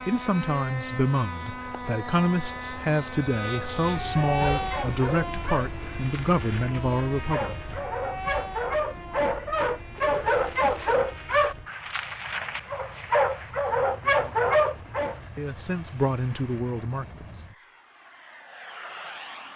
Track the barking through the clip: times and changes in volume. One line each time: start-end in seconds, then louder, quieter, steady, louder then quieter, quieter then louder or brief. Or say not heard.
4.1-15.2 louder.